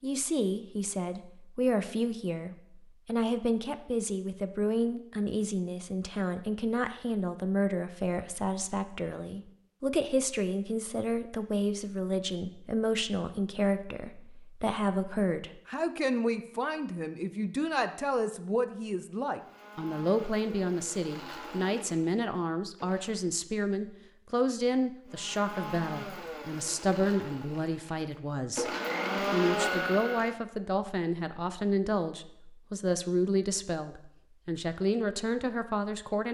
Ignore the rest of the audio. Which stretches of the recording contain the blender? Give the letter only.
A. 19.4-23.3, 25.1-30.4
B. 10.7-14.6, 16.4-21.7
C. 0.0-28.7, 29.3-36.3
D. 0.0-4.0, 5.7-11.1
A.